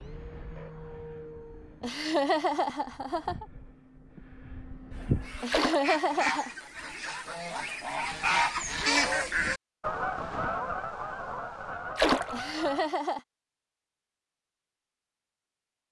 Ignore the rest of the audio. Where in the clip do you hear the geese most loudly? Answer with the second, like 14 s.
9 s.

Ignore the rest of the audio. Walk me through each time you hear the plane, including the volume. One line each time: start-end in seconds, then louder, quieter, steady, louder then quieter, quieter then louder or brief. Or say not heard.
0.0-5.5 quieter then louder.